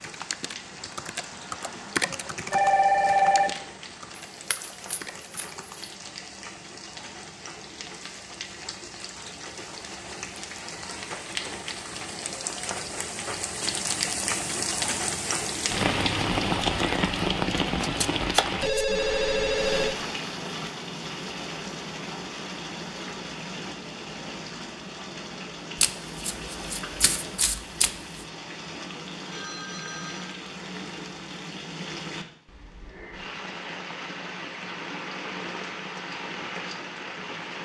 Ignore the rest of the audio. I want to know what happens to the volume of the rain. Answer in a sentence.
The volume of the rain goes up, then down.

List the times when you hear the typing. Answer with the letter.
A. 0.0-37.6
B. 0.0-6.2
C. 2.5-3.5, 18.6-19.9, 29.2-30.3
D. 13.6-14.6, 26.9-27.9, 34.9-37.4
B.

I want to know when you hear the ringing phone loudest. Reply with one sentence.
The volume of the ringing phone peaks at 3 seconds.